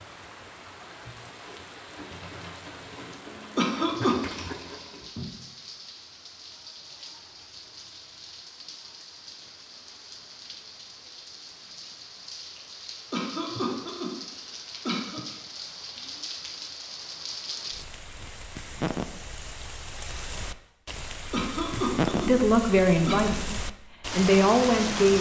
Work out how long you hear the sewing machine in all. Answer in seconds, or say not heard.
5 s.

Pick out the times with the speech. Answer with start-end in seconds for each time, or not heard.
22.1-25.1.